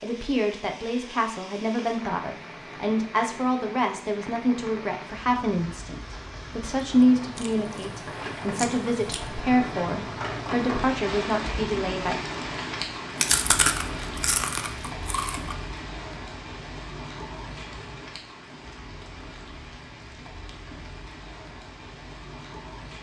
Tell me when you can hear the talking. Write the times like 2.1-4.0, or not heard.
0.0-12.2.